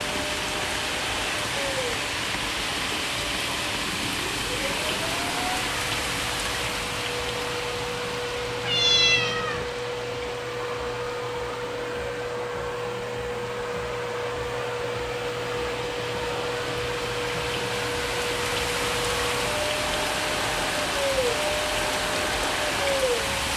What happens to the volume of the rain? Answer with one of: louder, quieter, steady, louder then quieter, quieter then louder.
quieter then louder.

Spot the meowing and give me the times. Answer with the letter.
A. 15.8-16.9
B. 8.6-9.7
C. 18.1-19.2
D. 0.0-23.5
B.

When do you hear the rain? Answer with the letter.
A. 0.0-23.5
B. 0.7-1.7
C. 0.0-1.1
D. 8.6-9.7
A.